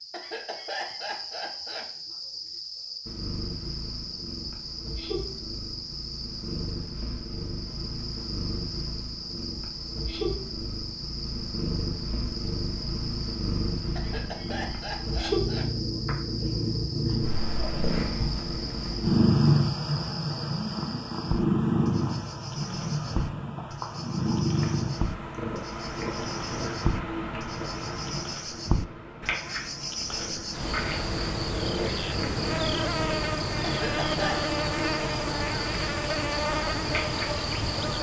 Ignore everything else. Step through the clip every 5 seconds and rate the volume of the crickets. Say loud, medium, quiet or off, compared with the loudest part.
medium, medium, medium, medium, medium, medium, loud, loud.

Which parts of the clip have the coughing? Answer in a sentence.
The coughing can be heard from 0.1 to 1.9 s, from 13.9 to 15.7 s and from 33.6 to 34.5 s.